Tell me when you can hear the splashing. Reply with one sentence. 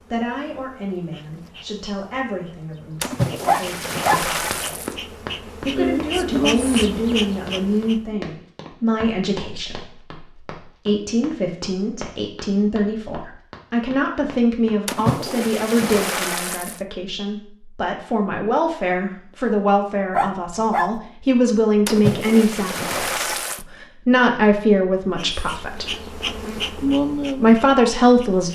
You can hear the splashing from 3.0 to 5.0 s, from 14.8 to 16.8 s and from 21.9 to 23.6 s.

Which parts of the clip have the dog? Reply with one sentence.
The dog can be heard from 3.5 to 4.2 s and from 20.1 to 20.9 s.